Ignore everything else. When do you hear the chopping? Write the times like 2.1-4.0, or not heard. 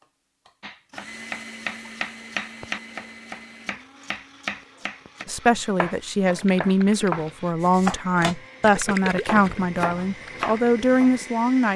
0.6-11.2.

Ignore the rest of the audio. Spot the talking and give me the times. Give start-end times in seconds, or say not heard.
5.2-11.7.